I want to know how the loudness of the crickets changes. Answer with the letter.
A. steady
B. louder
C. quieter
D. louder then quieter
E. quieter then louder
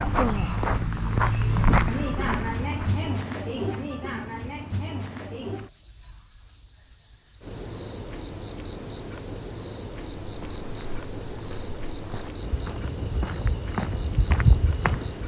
C.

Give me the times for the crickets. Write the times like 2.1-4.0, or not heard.
0.0-15.2.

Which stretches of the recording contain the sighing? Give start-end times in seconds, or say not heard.
0.1-0.7.